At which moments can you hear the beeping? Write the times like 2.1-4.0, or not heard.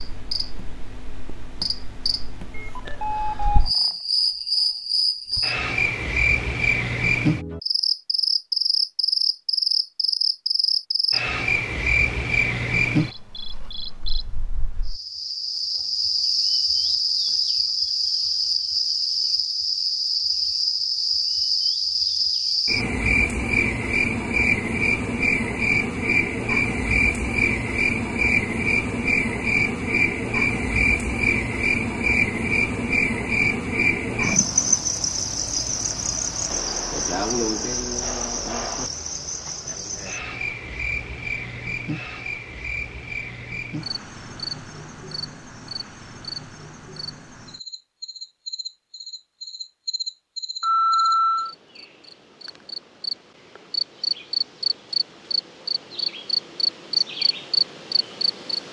2.5-4.0, 34.2-34.8, 50.6-51.5.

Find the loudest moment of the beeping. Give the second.
51 s.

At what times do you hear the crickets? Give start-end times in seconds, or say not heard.
0.0-58.6.